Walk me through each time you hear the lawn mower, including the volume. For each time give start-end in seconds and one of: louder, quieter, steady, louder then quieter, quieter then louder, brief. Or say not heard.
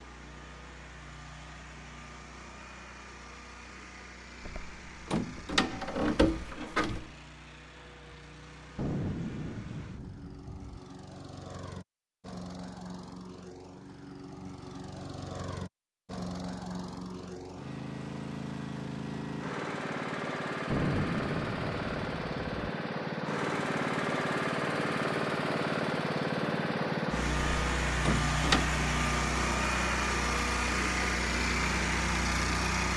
0.0-32.9 louder.